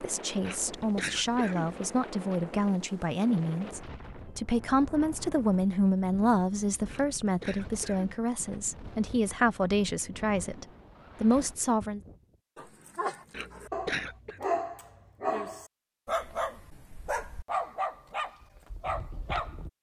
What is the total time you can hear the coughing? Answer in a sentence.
The coughing can be heard for 4 seconds in total.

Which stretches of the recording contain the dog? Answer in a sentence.
You can hear the dog from 12.6 to 19.7 s.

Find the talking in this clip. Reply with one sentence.
The talking can be heard from 0.0 to 12.0 s.